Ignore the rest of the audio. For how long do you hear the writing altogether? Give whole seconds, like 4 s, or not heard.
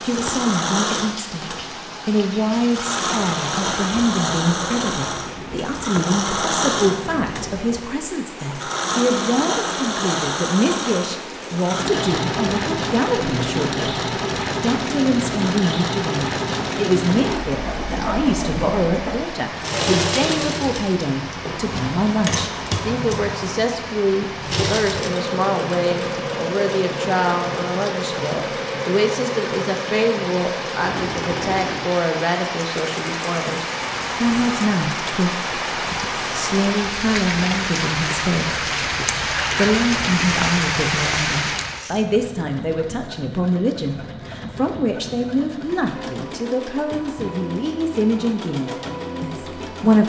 not heard.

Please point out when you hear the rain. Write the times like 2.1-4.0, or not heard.
0.0-41.9.